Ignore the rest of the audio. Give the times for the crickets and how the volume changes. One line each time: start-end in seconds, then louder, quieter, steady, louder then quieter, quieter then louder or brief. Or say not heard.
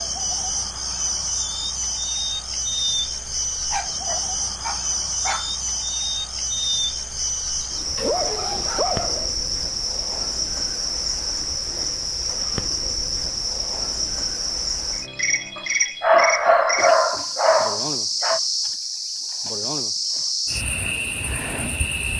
0.0-22.1 steady.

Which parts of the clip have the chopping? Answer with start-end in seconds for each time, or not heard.
not heard.